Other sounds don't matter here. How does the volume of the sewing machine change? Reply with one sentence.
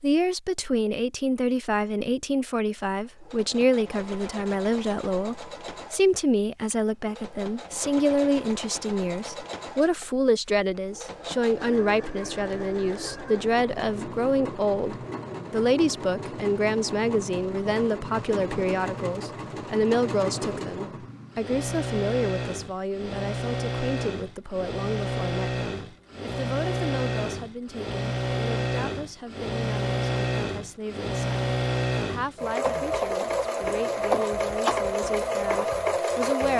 The volume of the sewing machine goes up.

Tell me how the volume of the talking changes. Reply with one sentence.
The volume of the talking goes down.